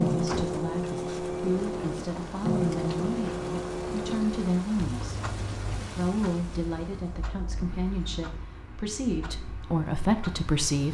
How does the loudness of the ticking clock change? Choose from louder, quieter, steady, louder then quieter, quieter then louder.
quieter.